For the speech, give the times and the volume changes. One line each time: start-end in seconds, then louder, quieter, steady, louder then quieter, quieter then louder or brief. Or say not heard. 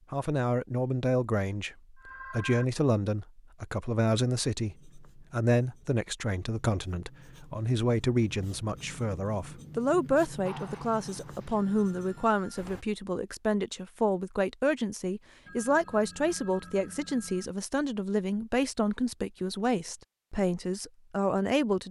0.1-21.8 steady.